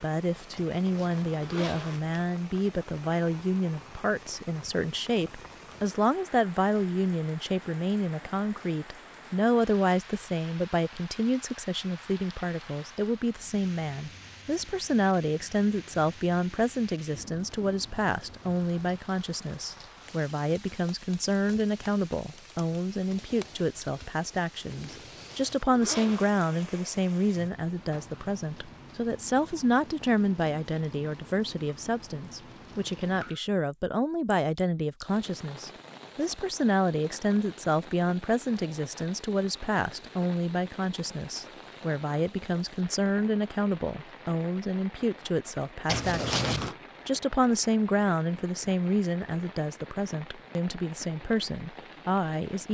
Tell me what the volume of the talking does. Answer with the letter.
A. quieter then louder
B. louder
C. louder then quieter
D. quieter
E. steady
E.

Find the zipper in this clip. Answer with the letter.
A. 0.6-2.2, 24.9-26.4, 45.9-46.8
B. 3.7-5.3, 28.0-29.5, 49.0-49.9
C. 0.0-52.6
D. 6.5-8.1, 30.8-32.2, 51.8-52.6
A.